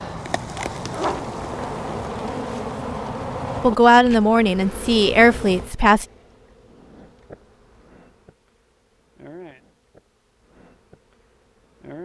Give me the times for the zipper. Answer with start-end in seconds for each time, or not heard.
0.7-2.1.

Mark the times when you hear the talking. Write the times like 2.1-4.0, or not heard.
3.6-6.0.